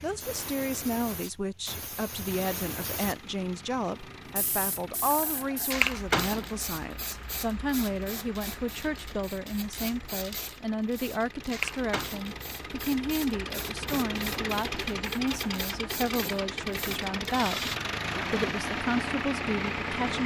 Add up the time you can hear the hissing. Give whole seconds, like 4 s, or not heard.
18 s.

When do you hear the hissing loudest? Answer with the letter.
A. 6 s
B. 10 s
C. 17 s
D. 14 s
A.